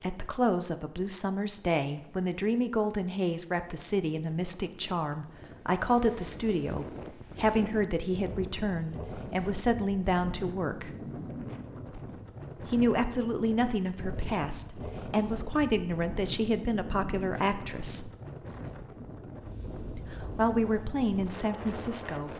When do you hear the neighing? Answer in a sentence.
You can't hear the neighing here.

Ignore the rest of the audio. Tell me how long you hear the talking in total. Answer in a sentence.
You can hear the talking for 19 seconds altogether.